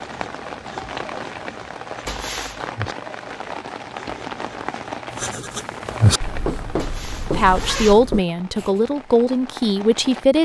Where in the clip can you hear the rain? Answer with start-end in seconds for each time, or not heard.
0.0-10.3.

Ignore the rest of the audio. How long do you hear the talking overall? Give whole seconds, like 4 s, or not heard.
3 s.